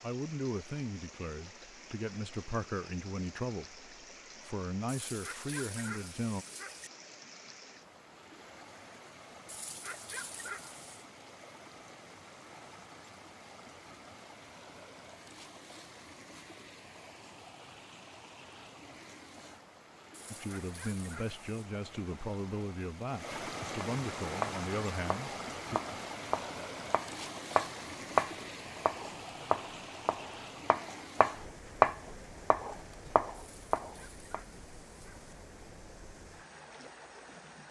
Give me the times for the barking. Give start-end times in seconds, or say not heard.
4.8-6.9, 9.4-11.1, 20.1-21.6, 33.4-35.3.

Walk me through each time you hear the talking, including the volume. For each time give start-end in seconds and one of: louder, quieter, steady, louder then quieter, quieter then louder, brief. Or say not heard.
0.0-6.5 steady
20.3-25.8 steady.